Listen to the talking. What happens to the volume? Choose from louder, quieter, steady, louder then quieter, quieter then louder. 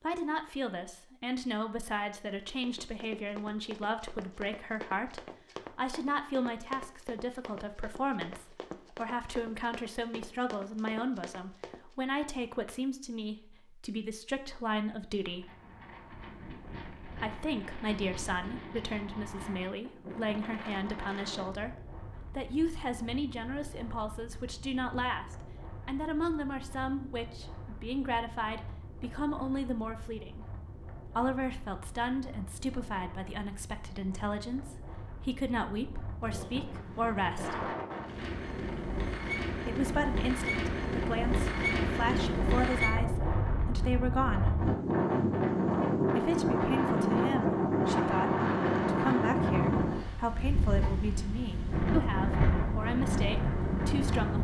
steady.